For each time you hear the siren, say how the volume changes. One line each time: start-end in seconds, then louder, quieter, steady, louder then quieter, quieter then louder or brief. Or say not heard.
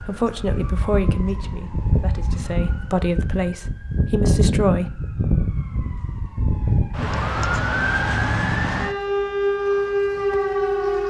0.0-11.0 louder.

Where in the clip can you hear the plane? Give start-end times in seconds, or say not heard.
not heard.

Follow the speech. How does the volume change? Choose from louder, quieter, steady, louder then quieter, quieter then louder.
quieter then louder.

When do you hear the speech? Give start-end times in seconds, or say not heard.
0.1-5.1.